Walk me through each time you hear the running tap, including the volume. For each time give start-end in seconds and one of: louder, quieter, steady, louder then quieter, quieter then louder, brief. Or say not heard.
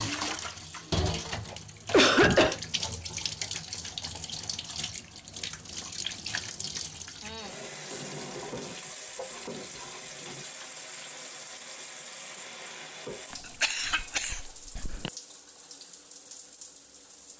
0.0-17.3 quieter.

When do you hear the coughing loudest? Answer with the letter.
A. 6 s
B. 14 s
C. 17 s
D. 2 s
D.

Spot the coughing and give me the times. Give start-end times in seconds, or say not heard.
1.4-2.6, 13.3-15.1.